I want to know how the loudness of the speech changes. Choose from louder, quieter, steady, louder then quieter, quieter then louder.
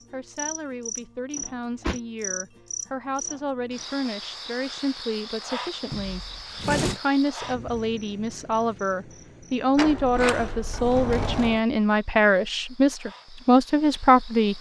louder.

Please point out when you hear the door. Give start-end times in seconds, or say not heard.
1.4-2.0, 5.9-7.0, 9.8-11.6.